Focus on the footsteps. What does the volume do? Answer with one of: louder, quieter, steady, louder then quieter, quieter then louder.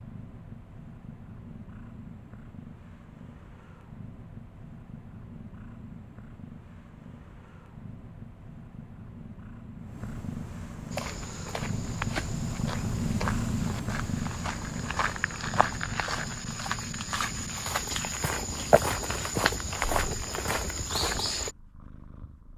louder.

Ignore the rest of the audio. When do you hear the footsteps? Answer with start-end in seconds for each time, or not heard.
10.9-21.5.